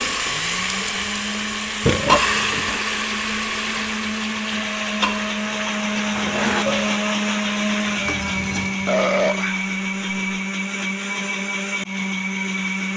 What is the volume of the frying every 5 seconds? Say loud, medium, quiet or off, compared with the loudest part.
loud, medium, off.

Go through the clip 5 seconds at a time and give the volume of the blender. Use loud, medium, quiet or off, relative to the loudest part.
medium, loud, loud.